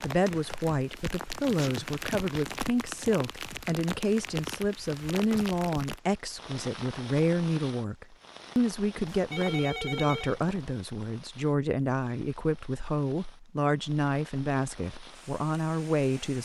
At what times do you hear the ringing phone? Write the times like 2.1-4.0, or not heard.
9.1-10.5.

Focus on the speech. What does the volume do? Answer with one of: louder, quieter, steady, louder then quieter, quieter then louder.
steady.